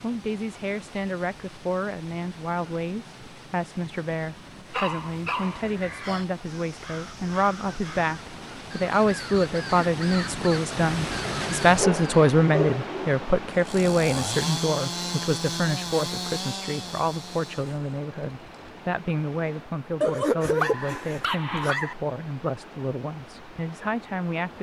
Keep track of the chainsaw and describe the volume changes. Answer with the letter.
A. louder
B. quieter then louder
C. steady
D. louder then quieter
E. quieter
E.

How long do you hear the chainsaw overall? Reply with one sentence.
The chainsaw can be heard for 5 seconds in total.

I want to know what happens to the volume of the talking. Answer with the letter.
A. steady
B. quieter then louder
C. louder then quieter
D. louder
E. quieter
C.